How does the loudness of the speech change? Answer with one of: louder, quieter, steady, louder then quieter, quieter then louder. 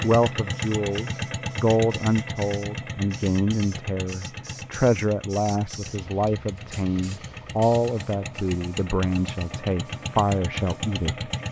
steady.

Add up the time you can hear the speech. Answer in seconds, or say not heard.
11 s.